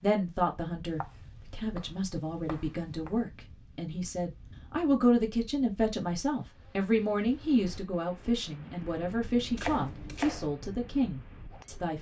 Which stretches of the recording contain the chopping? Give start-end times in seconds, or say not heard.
1.0-3.1, 9.6-10.5.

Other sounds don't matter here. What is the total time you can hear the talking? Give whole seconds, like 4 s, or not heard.
12 s.